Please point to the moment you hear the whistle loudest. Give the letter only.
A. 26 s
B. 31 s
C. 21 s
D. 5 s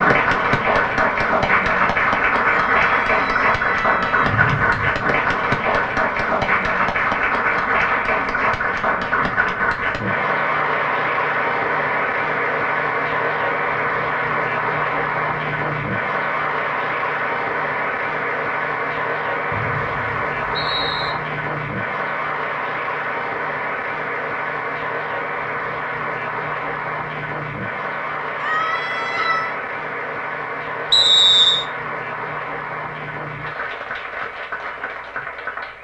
B.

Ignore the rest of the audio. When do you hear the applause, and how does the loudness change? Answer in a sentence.
The applause can be heard from 0.0 to 35.7 s, getting quieter.